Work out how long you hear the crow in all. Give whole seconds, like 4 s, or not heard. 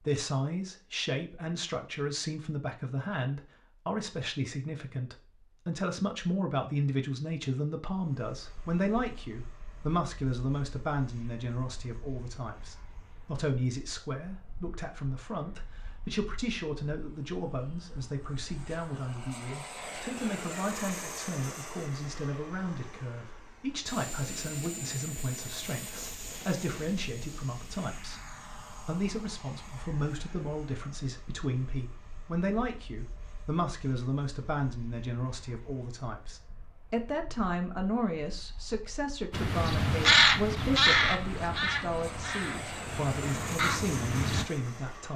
5 s.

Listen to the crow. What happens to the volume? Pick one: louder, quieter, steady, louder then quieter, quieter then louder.
quieter then louder.